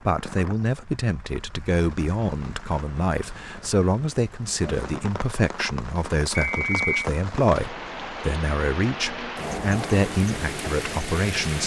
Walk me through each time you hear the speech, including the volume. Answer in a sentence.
The speech can be heard from 0.1 to 11.6 s, at a steady volume.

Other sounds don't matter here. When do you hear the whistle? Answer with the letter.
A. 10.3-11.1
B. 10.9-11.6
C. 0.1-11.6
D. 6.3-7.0
D.